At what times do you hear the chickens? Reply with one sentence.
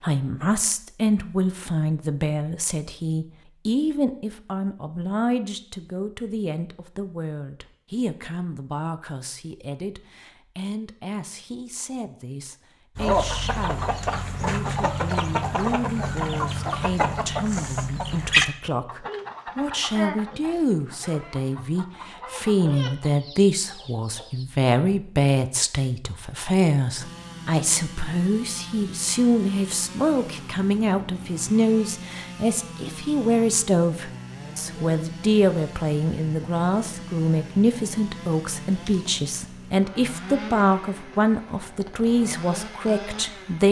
The chickens can be heard from 12.9 to 24.4 s.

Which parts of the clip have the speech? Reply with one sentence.
The speech can be heard from 0.0 to 43.6 s.